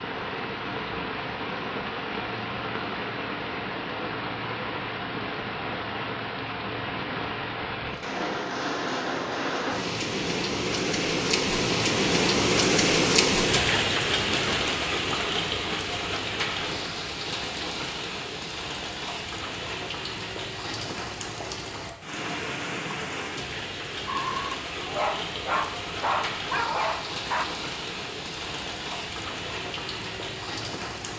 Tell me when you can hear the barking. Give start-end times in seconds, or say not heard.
24.1-27.4.